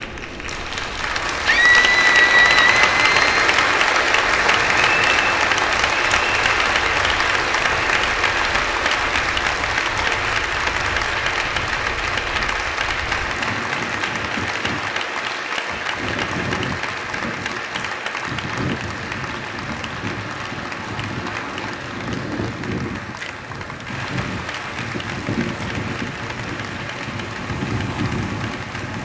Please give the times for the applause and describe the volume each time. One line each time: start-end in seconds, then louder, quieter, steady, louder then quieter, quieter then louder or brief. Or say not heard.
0.0-28.9 quieter.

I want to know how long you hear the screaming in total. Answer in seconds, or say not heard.
2 s.